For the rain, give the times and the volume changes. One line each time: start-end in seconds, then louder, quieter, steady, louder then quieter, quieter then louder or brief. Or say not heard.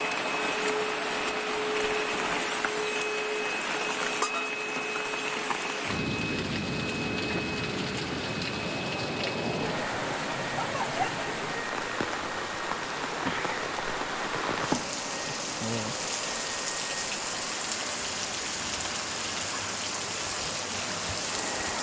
0.0-21.7 steady.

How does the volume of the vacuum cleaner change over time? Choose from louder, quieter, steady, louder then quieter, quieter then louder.
quieter.